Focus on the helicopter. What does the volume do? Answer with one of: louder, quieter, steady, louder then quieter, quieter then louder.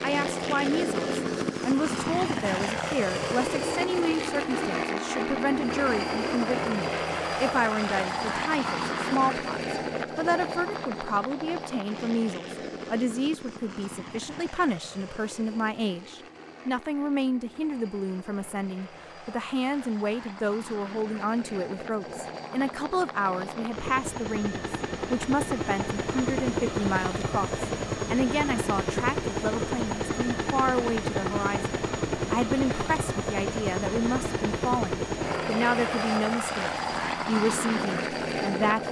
quieter then louder.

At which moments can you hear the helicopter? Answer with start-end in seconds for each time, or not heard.
0.0-38.8.